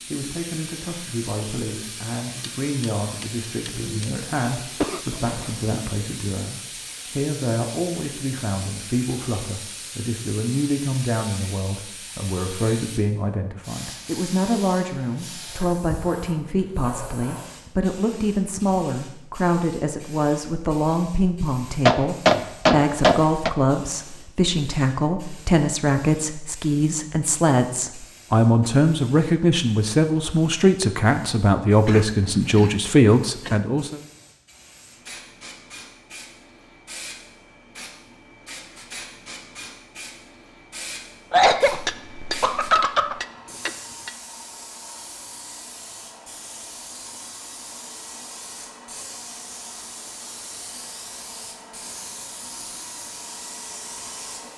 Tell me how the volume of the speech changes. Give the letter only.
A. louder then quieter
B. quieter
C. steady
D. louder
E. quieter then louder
D.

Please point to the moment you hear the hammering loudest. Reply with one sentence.
The volume of the hammering peaks at 22 seconds.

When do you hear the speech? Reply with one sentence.
You can hear the speech from 0.1 to 34.0 s.